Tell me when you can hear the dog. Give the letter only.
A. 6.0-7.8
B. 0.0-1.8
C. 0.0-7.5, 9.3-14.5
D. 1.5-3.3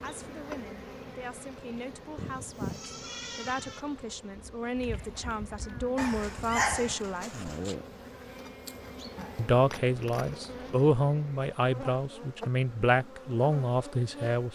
A.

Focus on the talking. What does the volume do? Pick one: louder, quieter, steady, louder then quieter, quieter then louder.
louder.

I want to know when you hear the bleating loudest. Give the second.
3 s.